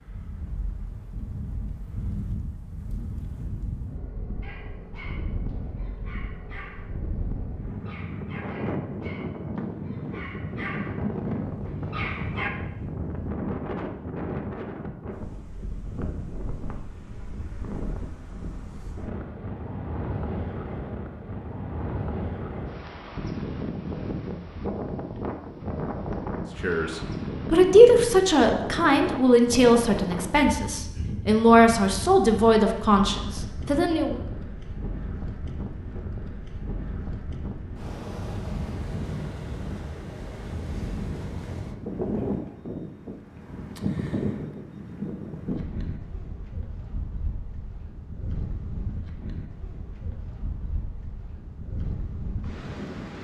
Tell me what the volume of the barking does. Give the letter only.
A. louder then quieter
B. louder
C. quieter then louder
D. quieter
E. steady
B.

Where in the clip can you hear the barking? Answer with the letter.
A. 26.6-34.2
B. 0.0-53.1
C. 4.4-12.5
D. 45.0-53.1
C.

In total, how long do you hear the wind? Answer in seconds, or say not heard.
53 s.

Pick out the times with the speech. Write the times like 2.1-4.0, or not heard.
26.6-34.2.